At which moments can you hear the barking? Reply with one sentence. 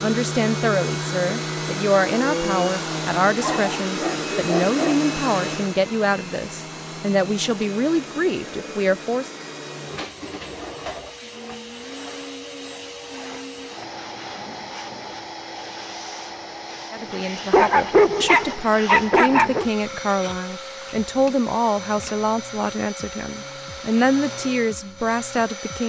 The barking can be heard from 3.4 to 5.0 s and from 17.5 to 19.6 s.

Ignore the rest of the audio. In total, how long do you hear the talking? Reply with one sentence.
You can hear the talking for 18 seconds altogether.